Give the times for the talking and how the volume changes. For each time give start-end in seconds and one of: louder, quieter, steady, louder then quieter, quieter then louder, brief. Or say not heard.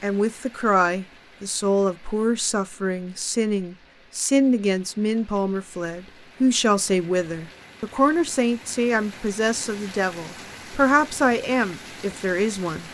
0.0-12.8 steady.